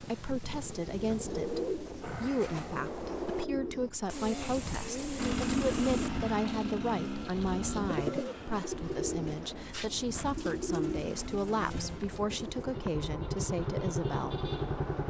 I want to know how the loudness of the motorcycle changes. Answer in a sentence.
The loudness of the motorcycle goes down, then up.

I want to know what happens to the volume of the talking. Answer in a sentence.
The volume of the talking stays about the same.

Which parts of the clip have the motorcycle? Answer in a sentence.
You can hear the motorcycle from 5.2 to 15.0 s.